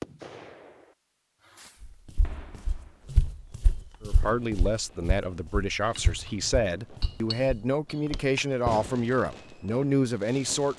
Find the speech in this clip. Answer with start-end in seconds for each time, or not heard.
4.0-10.7.